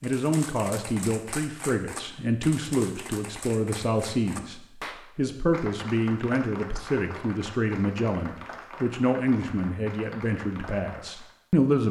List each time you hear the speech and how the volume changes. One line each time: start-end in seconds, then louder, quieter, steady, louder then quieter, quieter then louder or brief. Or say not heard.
0.0-11.8 steady.